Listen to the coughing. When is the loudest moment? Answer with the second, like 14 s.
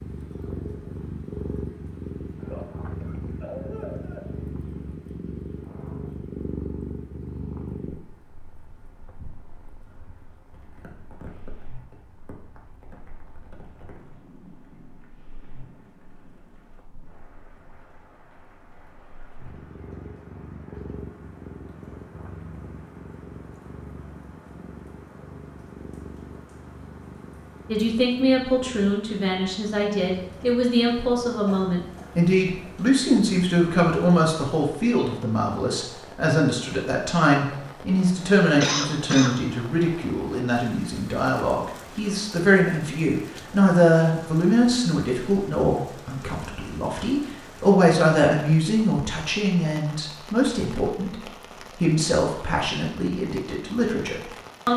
39 s.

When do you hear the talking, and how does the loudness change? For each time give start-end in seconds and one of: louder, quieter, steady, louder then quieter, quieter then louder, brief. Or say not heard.
27.7-51.1 steady
51.8-54.7 brief.